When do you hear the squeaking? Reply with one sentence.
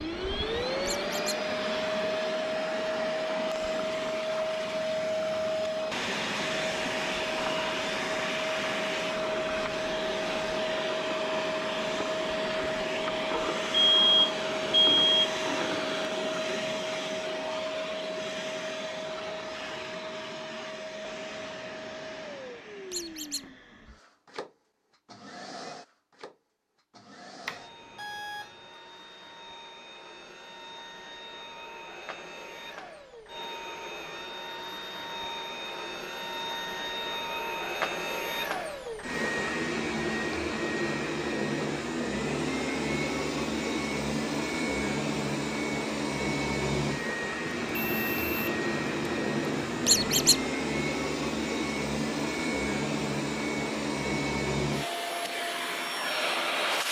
The squeaking can be heard from 0.8 to 1.4 s, from 22.9 to 23.4 s and from 49.9 to 50.4 s.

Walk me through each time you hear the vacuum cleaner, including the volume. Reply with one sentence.
You can hear the vacuum cleaner from 0.0 to 56.8 s, getting quieter then louder.